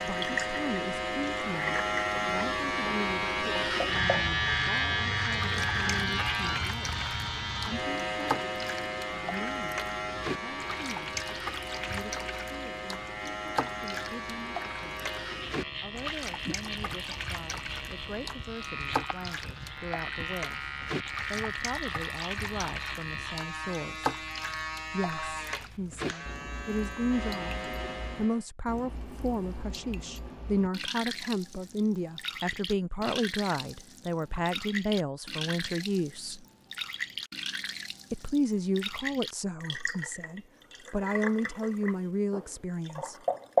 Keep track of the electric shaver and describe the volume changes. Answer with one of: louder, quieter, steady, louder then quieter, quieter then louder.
quieter.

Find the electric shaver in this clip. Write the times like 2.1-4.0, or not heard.
0.0-28.4.